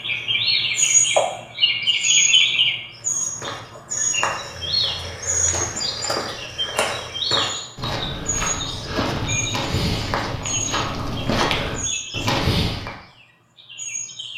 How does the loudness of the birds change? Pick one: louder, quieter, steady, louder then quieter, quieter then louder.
quieter.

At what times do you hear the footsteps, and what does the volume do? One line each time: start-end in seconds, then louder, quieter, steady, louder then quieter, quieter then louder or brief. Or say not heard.
3.0-12.9 louder.